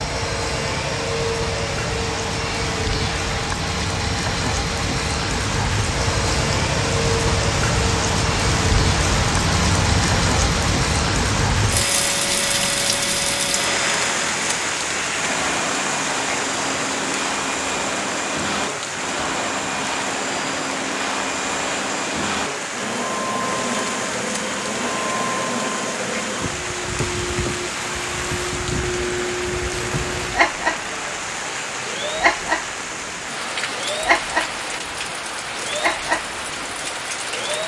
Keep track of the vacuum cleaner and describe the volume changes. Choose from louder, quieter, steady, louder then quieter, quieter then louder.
steady.